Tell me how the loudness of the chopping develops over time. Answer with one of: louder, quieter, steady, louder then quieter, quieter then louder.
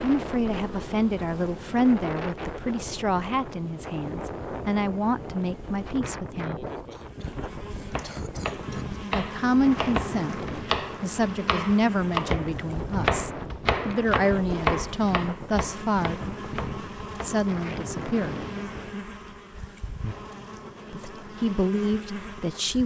louder then quieter.